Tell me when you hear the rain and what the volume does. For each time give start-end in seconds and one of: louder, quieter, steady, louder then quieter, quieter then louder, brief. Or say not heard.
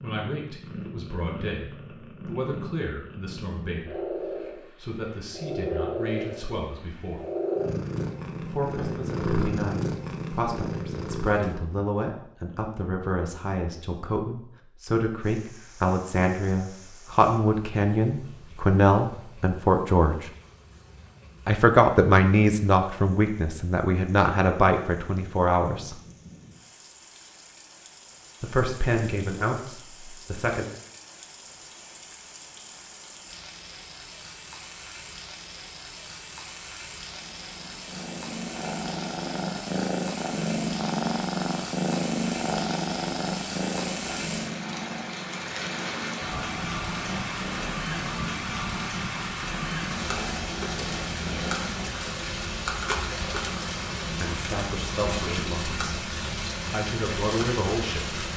15.2-58.3 louder.